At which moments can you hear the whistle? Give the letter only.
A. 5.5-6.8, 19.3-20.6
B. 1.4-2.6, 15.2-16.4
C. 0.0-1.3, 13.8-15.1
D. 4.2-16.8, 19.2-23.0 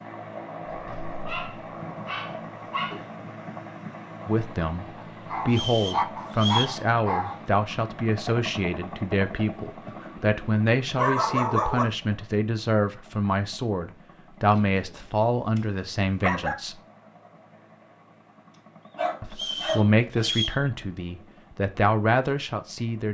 A.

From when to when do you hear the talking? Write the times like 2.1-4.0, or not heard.
4.2-16.8, 19.2-23.0.